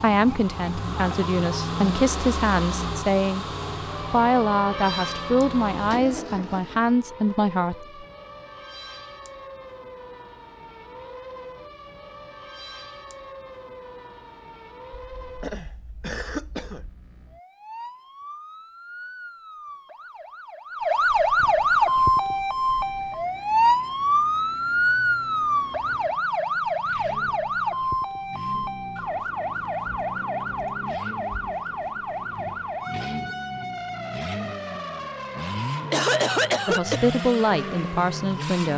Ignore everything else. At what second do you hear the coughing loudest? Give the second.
36 s.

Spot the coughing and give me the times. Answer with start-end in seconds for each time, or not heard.
14.9-16.9, 35.9-37.0.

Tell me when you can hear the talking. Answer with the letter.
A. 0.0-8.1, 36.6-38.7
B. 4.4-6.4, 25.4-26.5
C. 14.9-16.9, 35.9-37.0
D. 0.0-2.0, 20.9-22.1
A.